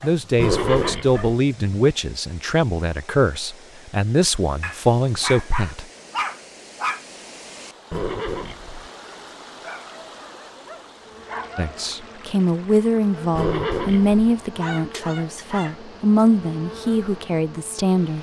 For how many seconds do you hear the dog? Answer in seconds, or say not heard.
8 s.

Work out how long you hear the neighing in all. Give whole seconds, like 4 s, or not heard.
3 s.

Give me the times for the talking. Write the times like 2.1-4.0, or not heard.
0.0-5.8, 11.6-18.1.